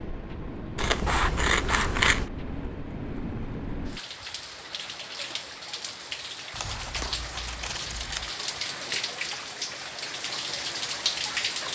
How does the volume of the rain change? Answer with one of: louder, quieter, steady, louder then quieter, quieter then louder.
louder.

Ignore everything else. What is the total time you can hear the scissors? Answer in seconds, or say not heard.
3 s.